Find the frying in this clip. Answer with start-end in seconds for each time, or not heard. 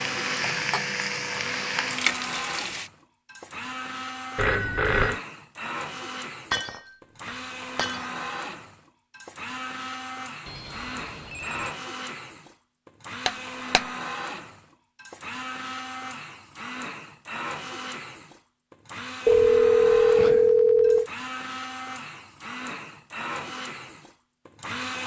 0.0-2.9.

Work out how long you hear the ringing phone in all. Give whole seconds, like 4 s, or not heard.
4 s.